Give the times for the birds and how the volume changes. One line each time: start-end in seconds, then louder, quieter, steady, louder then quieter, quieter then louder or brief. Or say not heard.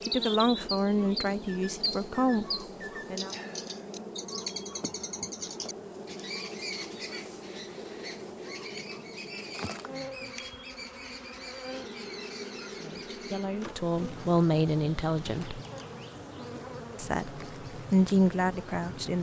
0.0-13.4 quieter.